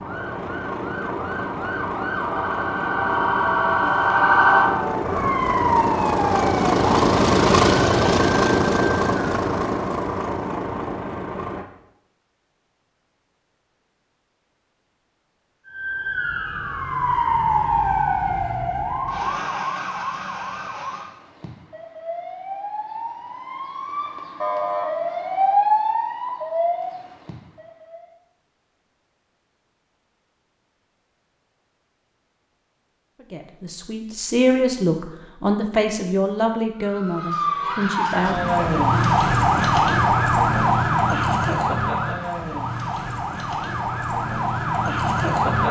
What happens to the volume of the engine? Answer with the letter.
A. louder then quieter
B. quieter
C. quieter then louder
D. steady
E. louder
A.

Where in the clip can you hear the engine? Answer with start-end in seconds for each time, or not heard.
0.0-11.7.